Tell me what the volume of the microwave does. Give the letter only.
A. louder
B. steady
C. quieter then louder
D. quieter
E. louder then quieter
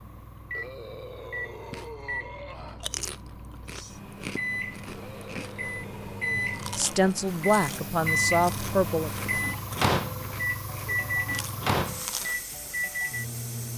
A.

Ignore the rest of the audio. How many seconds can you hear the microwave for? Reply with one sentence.
The microwave can be heard for 14 seconds in total.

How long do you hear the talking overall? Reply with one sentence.
The talking can be heard for 2 seconds in total.